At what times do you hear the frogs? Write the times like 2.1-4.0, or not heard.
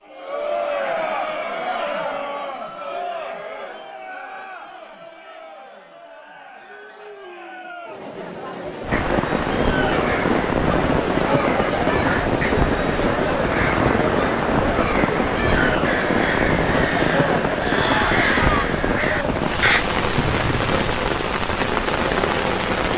not heard.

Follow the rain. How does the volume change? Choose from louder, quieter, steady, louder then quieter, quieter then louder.
steady.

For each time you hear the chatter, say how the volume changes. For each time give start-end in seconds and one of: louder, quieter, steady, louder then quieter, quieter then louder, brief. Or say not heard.
0.0-18.6 quieter then louder.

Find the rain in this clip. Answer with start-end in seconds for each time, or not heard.
8.8-22.9.